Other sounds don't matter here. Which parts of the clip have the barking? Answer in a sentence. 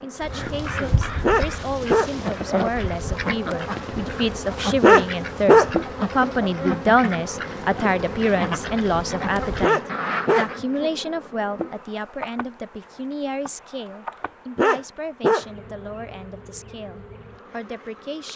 You can hear the barking from 1.2 to 2.1 s, from 4.8 to 5.7 s, from 9.6 to 10.5 s and from 14.6 to 15.4 s.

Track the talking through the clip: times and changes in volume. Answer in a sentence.
You can hear the talking from 0.0 to 18.3 s, getting louder then quieter.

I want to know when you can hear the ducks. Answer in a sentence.
You can hear the ducks from 0.2 to 10.6 s.